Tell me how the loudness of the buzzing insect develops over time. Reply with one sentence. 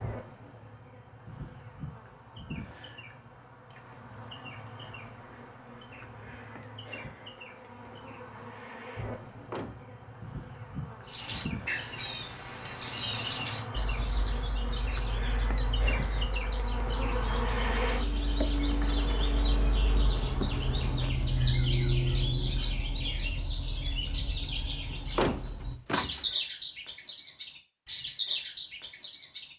The volume of the buzzing insect goes up.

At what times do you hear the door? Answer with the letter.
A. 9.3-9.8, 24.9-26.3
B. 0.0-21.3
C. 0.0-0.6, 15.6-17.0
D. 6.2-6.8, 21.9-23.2
A.